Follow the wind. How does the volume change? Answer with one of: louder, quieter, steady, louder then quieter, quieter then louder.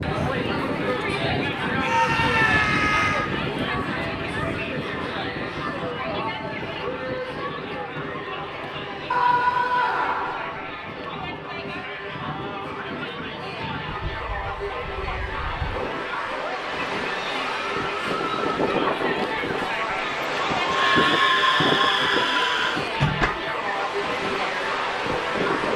quieter then louder.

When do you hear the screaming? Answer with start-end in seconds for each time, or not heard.
1.8-3.3, 9.1-10.6, 20.6-22.9.